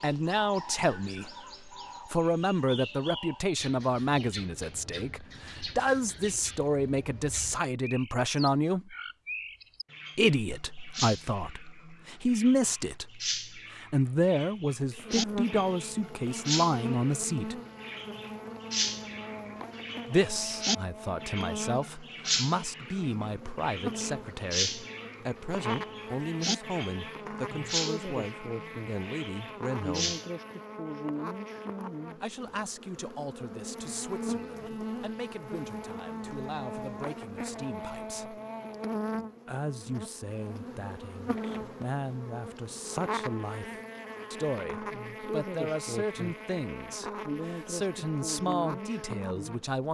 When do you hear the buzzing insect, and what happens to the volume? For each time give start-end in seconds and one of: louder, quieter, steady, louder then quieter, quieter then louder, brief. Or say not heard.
14.9-49.8 steady.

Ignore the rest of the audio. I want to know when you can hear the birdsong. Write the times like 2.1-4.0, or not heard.
0.0-30.4.